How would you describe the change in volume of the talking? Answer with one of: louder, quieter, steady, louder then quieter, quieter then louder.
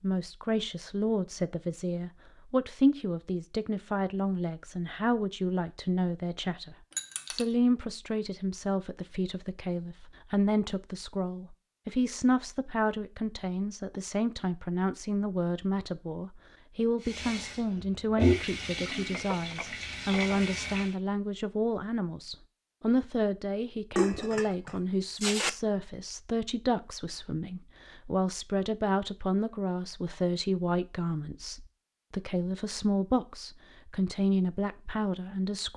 steady.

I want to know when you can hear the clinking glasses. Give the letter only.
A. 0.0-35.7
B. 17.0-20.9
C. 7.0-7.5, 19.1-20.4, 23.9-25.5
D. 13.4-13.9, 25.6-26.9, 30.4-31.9
C.